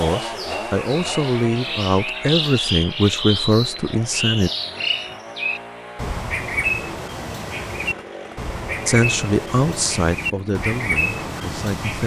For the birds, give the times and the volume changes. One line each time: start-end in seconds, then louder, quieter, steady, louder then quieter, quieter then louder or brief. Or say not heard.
0.0-12.0 steady.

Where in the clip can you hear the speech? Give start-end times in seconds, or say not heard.
0.0-4.5, 8.8-12.0.